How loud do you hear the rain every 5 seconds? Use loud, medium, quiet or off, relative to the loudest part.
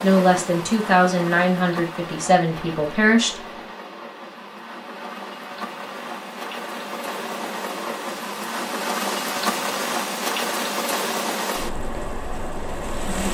medium, loud, loud.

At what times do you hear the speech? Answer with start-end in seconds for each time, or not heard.
0.0-3.4.